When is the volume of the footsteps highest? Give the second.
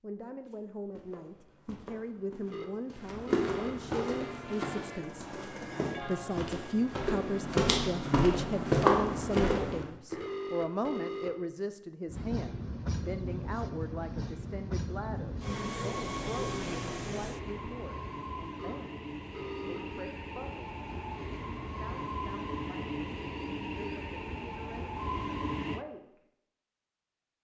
9 s.